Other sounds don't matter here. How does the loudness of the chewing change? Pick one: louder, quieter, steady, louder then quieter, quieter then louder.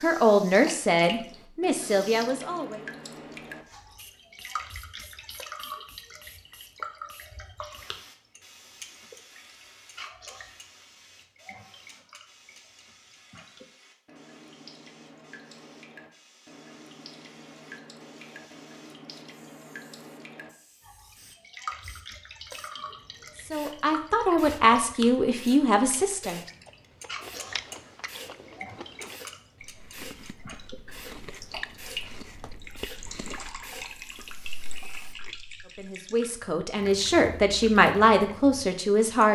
quieter.